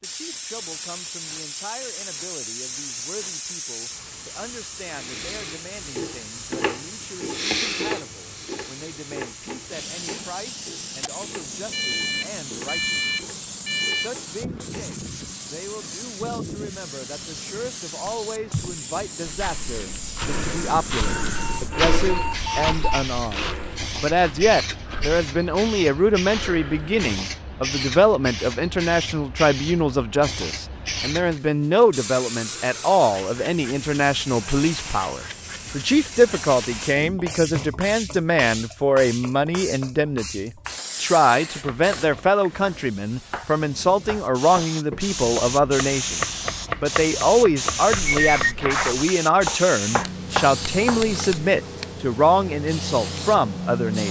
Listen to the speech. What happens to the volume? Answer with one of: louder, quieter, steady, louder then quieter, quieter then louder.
louder.